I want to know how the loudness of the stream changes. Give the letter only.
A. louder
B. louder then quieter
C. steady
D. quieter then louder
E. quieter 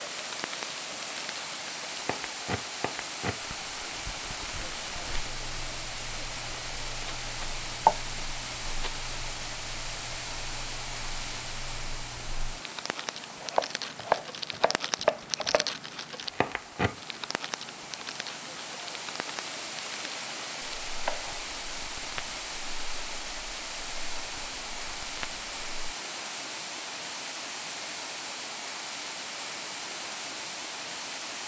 D.